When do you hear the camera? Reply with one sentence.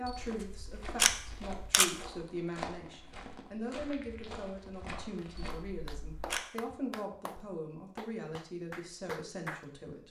The camera can be heard from 0.1 to 1.9 s and from 5.3 to 6.4 s.